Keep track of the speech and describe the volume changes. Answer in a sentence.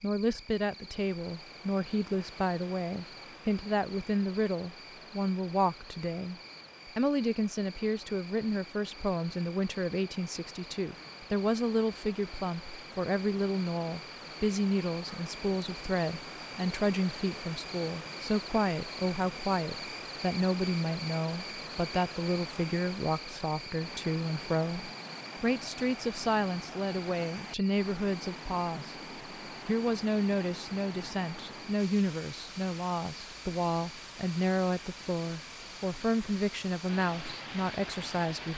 The volume of the speech stays about the same.